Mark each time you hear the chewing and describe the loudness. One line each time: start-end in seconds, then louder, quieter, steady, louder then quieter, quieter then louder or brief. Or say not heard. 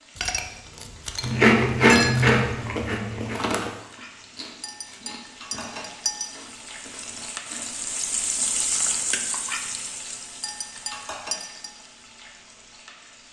1.2-9.2 quieter.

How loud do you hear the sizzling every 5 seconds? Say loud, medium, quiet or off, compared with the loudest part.
quiet, loud, medium.